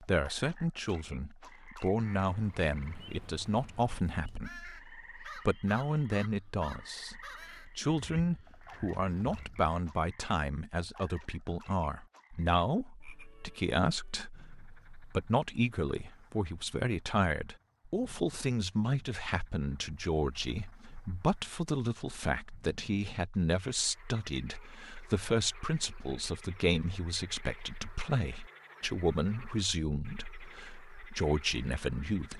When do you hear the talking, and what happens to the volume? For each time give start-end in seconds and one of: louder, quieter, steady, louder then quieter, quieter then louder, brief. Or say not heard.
0.0-32.3 steady.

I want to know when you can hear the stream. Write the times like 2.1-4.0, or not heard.
not heard.